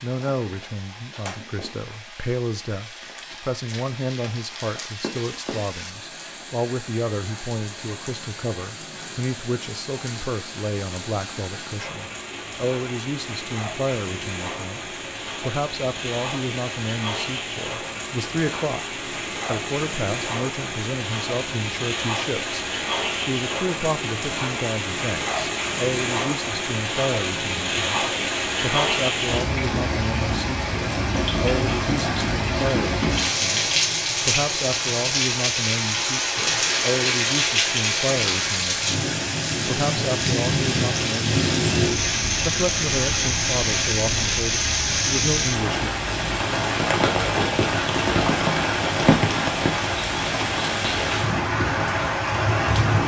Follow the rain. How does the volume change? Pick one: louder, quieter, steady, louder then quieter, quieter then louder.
louder.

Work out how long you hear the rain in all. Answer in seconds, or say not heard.
53 s.